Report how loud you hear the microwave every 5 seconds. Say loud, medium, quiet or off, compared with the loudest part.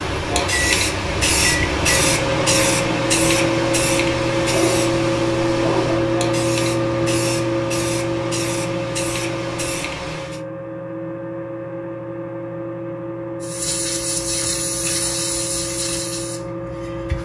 loud, loud, medium, medium.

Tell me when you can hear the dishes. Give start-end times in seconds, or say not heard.
not heard.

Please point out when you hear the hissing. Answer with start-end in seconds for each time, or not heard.
0.0-10.4, 13.4-17.2.